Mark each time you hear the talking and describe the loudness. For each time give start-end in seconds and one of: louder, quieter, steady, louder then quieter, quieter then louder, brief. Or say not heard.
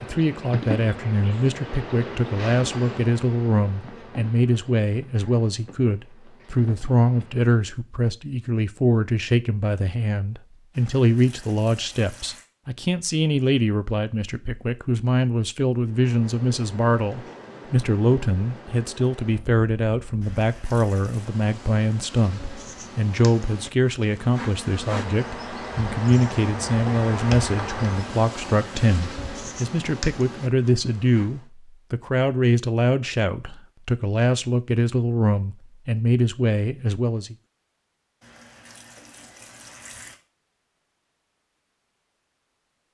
0.0-37.4 steady.